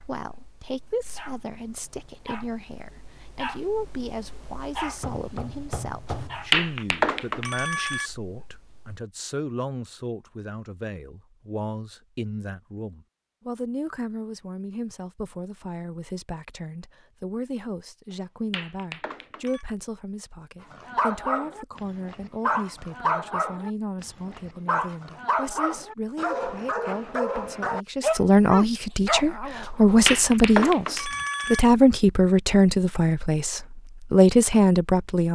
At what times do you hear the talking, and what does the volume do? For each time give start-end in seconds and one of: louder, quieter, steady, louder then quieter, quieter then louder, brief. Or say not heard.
0.0-35.3 louder.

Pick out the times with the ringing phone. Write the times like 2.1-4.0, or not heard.
6.1-8.1, 18.1-19.6, 29.6-31.6.